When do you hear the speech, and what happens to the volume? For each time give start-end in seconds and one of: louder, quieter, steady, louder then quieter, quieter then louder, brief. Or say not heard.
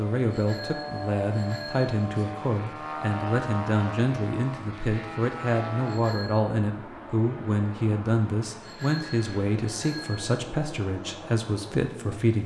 0.0-12.4 steady.